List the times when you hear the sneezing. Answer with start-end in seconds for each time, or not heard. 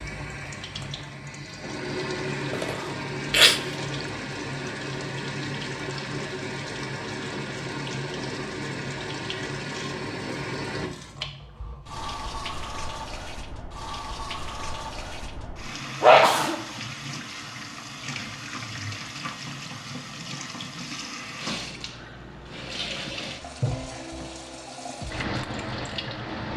2.5-3.6, 16.0-16.6.